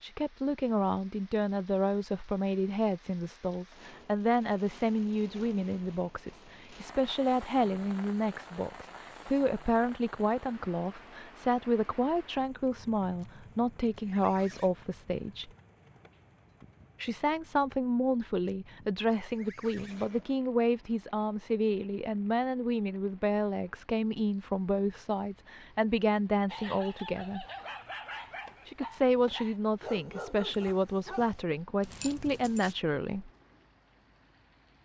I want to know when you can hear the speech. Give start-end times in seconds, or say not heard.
0.0-15.5, 17.0-27.4, 28.6-33.3.